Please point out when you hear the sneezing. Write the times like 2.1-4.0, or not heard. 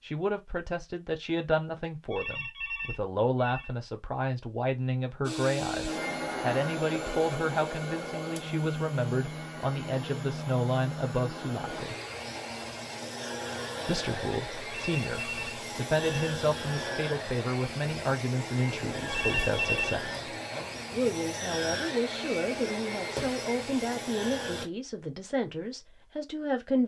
not heard.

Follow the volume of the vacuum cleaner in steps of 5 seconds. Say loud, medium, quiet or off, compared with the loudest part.
off, loud, loud, loud, loud, off.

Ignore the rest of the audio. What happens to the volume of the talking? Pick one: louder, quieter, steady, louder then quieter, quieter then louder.
steady.